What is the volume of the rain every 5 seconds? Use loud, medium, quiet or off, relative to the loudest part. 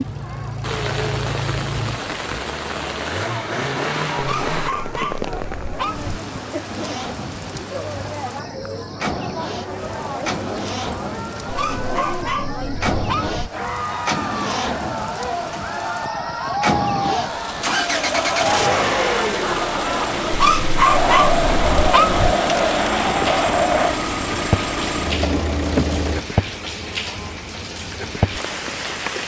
loud, medium, medium, medium, loud, loud.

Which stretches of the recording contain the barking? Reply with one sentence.
The barking can be heard from 4.2 to 6.2 s, from 11.4 to 13.4 s and from 20.3 to 22.4 s.